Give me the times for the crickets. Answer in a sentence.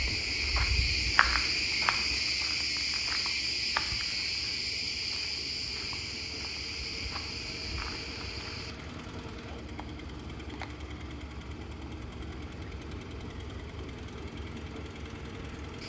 The crickets can be heard from 0.0 to 15.8 s.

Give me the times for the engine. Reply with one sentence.
You can hear the engine from 0.0 to 15.8 s.